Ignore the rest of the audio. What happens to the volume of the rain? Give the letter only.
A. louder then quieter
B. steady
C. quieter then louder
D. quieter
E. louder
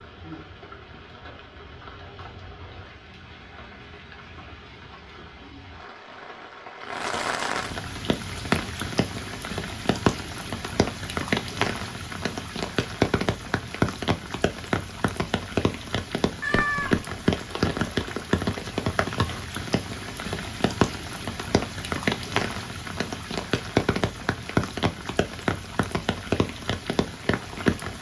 E.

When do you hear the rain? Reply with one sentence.
You can hear the rain from 0.0 to 27.9 s.